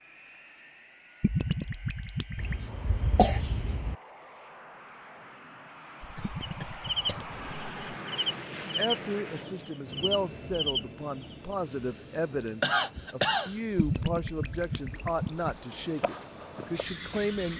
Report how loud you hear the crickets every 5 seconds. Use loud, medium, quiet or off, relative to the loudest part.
off, loud, loud, medium.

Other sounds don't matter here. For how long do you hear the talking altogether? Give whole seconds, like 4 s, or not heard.
9 s.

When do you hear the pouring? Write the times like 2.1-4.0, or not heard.
1.2-2.5, 6.2-7.5, 13.8-15.5.